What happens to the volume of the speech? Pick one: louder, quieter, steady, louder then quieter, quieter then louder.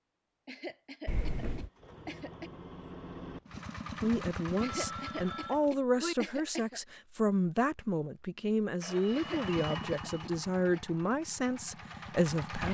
steady.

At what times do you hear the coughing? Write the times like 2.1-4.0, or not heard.
0.5-2.5, 4.6-6.8, 9.1-10.8.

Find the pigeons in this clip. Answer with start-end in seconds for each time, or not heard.
not heard.